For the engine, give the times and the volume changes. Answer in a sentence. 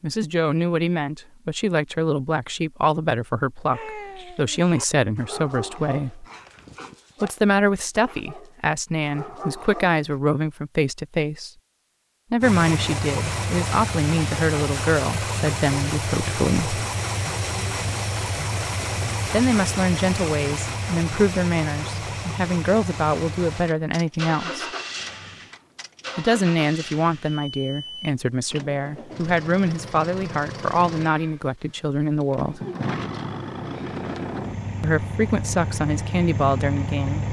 The engine can be heard from 12.4 to 37.2 s, getting quieter then louder.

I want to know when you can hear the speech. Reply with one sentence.
You can hear the speech from 0.0 to 6.2 s, from 7.2 to 11.5 s, from 12.3 to 16.8 s, from 19.3 to 24.6 s, from 26.1 to 32.6 s and from 34.8 to 37.2 s.